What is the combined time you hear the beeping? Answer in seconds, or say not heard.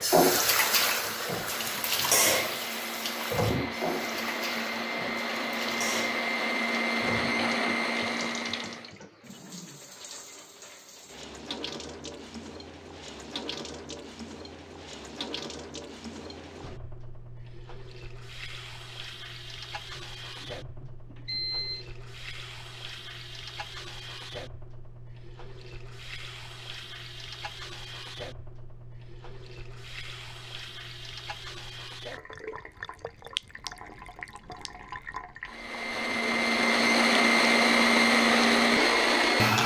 2 s.